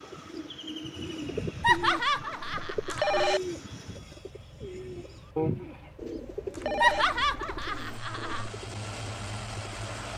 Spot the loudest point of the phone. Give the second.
3 s.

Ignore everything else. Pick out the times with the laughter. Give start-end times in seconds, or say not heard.
1.6-3.4, 6.8-8.5.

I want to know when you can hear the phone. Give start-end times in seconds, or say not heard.
2.9-3.4, 6.5-7.0.